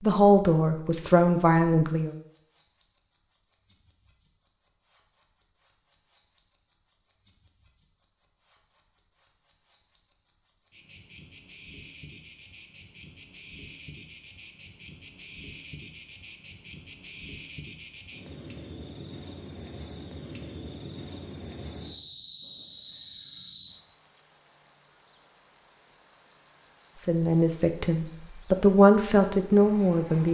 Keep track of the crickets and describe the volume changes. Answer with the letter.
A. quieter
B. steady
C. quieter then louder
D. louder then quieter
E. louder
E.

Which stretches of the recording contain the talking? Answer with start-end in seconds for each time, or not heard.
0.0-2.1, 26.9-30.3.